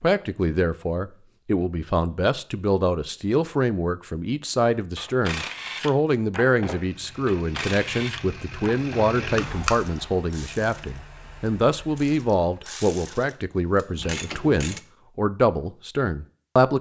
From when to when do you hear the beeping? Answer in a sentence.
You can hear the beeping from 9.3 to 10.1 s.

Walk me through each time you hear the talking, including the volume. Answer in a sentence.
The talking can be heard from 0.0 to 16.7 s, at a steady volume.